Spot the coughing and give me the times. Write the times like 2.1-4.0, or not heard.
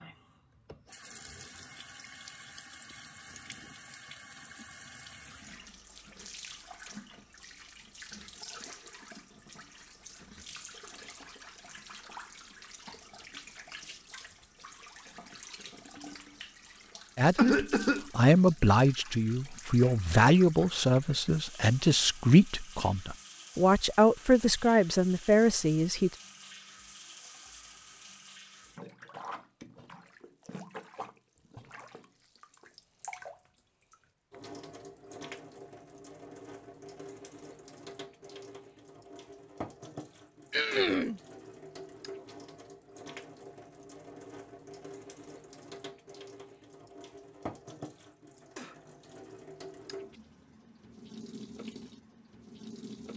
17.4-18.1, 40.5-41.2.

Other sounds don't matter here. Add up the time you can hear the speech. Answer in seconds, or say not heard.
9 s.